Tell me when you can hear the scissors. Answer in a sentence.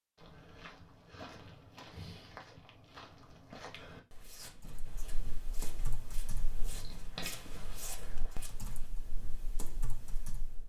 The scissors can be heard from 6.7 to 7.8 s.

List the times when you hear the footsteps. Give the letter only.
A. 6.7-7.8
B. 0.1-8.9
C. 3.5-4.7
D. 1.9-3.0
B.